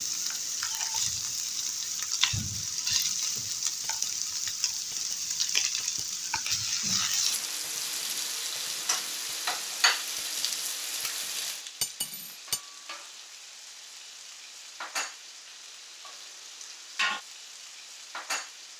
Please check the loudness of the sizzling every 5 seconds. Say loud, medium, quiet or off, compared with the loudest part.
loud, loud, medium, medium.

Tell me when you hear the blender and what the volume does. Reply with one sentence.
The blender can't be heard in this clip.